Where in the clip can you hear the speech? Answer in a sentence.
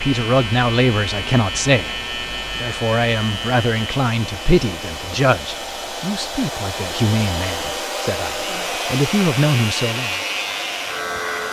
You can hear the speech from 0.0 to 10.2 s.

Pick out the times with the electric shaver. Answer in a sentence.
You can hear the electric shaver from 0.0 to 11.4 s.